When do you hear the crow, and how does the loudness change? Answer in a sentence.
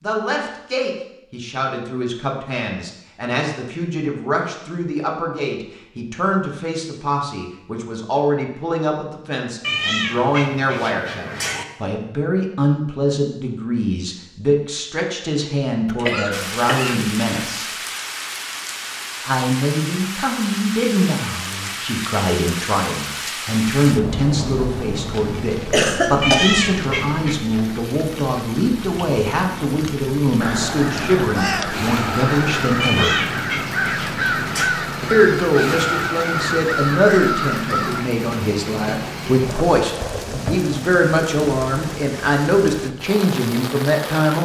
The crow can be heard from 30.4 to 38.1 s, at a steady volume.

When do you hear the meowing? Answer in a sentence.
You can hear the meowing from 9.6 to 11.7 s, from 26.2 to 27.4 s and from 32.8 to 34.8 s.